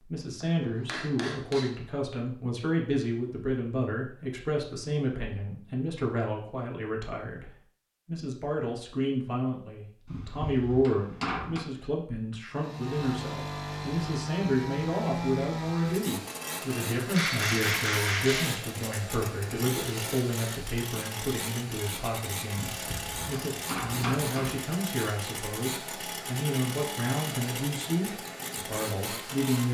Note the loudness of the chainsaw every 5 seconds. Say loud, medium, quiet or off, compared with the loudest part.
off, off, loud, loud, loud, loud.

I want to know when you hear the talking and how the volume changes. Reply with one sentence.
The talking can be heard from 0.0 to 29.6 s, at a steady volume.